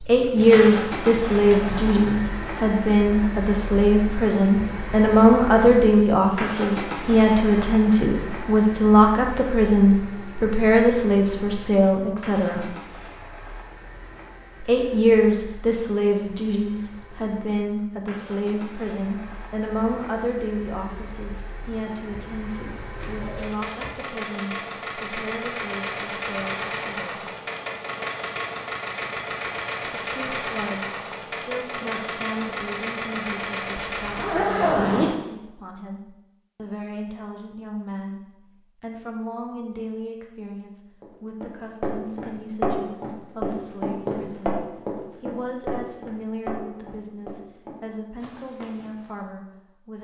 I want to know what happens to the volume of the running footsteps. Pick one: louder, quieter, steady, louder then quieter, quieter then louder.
quieter.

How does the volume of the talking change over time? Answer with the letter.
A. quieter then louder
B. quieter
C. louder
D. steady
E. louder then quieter
B.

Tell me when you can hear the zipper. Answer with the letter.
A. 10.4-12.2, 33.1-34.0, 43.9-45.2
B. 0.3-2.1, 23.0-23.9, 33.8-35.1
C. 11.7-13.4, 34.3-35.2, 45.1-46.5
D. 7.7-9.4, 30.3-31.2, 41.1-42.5
B.